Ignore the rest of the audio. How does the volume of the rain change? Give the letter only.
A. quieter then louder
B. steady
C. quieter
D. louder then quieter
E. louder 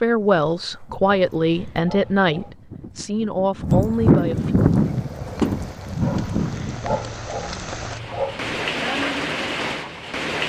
E.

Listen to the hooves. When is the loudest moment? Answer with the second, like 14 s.
4 s.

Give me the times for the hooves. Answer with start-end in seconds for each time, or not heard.
0.1-7.0.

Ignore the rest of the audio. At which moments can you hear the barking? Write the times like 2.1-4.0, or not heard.
1.1-2.5, 6.0-8.6.